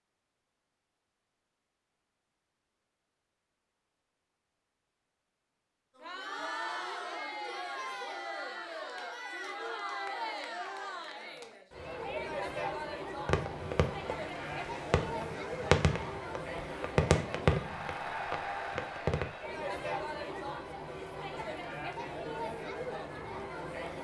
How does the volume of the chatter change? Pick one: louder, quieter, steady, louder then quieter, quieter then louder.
steady.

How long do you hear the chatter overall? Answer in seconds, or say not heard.
18 s.